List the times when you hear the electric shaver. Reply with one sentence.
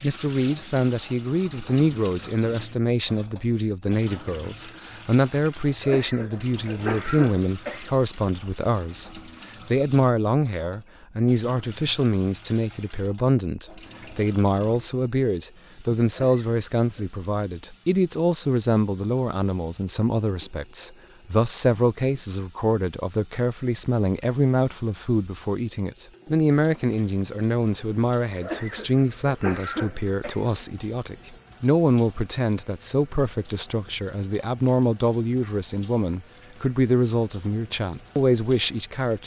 The electric shaver can't be heard in this clip.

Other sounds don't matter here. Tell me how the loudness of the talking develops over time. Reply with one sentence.
The loudness of the talking stays about the same.